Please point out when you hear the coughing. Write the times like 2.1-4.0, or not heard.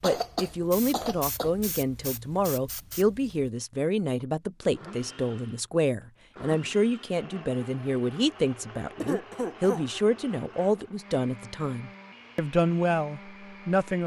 0.0-1.5, 9.0-9.8.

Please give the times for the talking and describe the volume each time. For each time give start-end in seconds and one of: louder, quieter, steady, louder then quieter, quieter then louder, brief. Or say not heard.
0.0-14.0 steady.